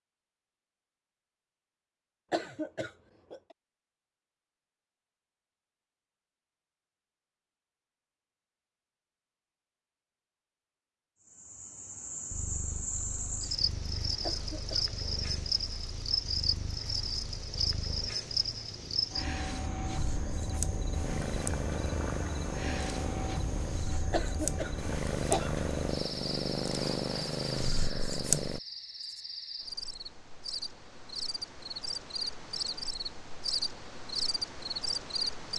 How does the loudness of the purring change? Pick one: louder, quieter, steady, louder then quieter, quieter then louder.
louder.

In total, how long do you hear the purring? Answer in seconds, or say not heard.
16 s.